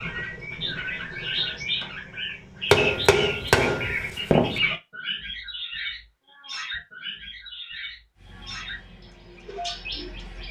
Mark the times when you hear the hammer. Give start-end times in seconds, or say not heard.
2.7-4.6.